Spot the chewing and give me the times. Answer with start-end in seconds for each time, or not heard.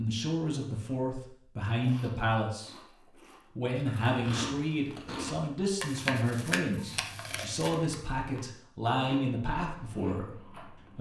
1.8-10.9.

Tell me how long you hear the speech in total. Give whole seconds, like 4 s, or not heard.
10 s.